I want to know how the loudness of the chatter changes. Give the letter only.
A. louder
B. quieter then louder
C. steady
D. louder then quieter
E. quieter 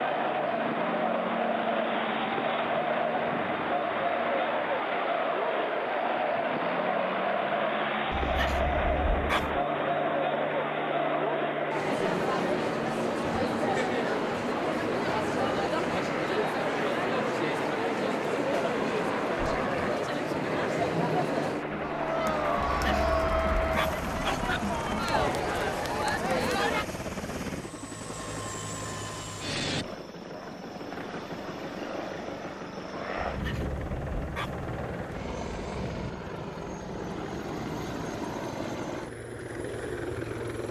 C.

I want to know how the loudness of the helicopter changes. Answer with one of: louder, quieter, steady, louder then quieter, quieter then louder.
steady.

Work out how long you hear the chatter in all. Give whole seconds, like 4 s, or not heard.
27 s.